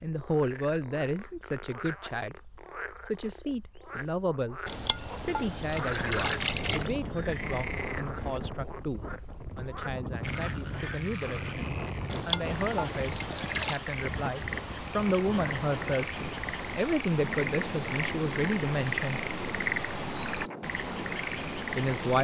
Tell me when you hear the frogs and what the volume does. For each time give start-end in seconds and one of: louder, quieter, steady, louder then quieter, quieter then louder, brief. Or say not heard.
0.0-22.2 louder.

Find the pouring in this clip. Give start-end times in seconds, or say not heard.
4.7-7.0, 12.1-13.8.